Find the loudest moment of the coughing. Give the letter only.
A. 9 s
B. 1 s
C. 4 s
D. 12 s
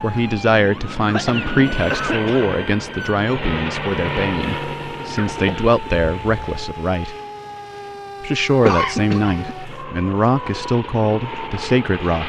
A.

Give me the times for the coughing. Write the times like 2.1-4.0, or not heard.
1.1-2.5, 5.2-6.7, 8.7-9.6.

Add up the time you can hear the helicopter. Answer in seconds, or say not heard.
12 s.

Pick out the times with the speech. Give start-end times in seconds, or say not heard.
0.0-7.2, 8.2-12.2.